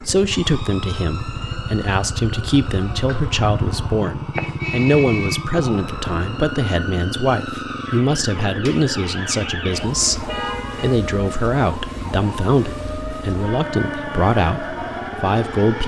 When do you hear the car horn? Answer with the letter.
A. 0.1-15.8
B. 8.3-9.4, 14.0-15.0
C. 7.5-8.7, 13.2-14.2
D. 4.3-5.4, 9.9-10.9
D.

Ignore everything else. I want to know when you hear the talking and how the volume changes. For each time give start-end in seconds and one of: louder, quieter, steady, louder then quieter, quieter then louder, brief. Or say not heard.
0.1-15.8 steady.